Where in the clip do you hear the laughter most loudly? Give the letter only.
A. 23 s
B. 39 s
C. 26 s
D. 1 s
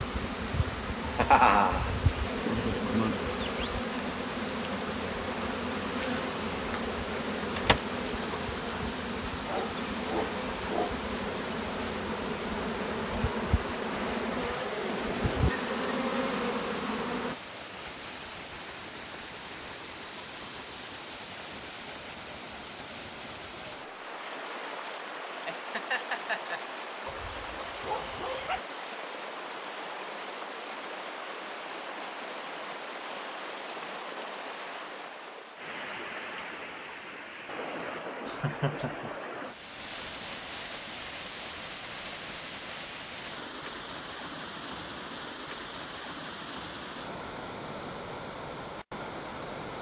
D.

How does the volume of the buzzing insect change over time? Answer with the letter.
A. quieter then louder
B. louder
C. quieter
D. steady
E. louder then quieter
D.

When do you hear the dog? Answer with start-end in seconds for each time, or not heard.
9.4-10.9, 27.1-28.6.